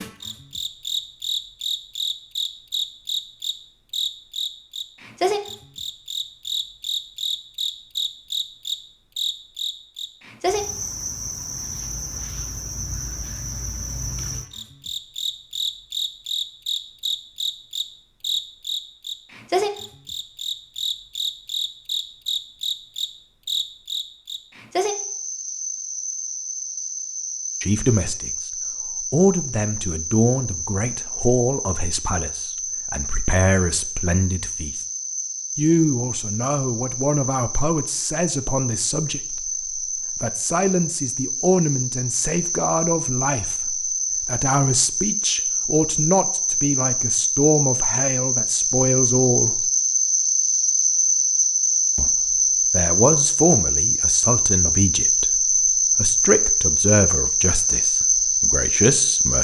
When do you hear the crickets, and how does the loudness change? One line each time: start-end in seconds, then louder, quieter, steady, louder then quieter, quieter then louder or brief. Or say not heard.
0.0-59.3 louder.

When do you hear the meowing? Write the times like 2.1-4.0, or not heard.
not heard.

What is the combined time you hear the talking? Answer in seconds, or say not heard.
28 s.